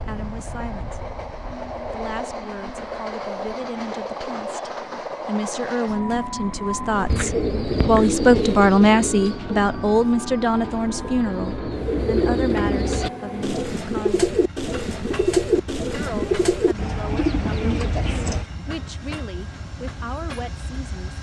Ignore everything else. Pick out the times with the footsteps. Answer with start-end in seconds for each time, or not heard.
not heard.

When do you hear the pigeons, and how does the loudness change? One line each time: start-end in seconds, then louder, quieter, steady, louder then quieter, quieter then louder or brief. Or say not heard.
6.9-18.4 quieter then louder.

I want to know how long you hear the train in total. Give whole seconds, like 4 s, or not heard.
21 s.